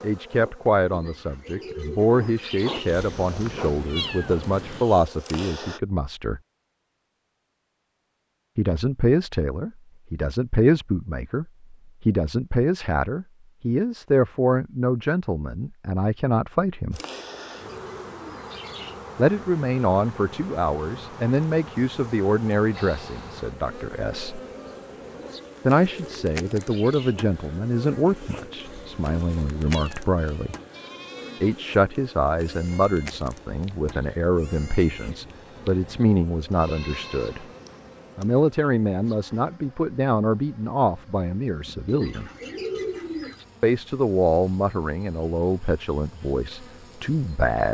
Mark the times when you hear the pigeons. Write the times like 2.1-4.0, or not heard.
0.9-3.0, 16.9-19.0, 25.2-27.2, 41.9-43.5.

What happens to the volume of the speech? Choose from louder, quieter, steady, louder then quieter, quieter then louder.
steady.